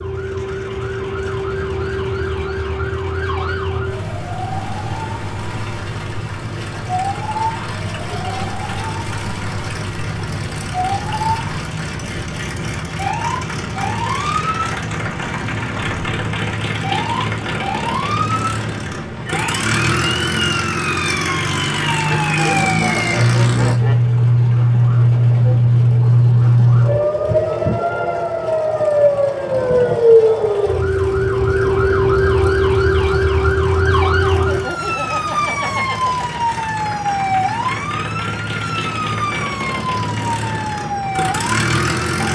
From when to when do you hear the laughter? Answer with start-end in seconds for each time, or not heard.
8.1-8.5, 22.1-24.0, 34.2-36.5.